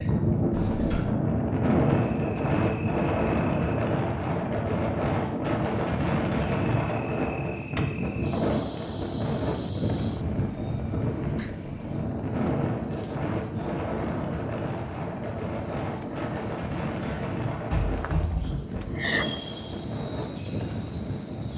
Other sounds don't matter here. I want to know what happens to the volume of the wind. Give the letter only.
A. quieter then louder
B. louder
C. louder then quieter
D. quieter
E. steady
D.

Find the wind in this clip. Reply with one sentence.
You can hear the wind from 0.0 to 21.5 s.